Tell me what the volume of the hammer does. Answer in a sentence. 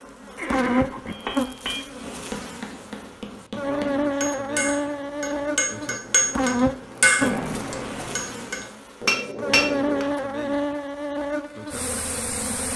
The volume of the hammer goes up.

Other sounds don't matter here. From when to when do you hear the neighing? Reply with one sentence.
You can hear the neighing from 0.3 to 1.1 s and from 7.2 to 8.2 s.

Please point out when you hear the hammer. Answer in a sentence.
The hammer can be heard from 1.1 to 10.1 s.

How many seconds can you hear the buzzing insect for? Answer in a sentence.
You can hear the buzzing insect for 13 seconds altogether.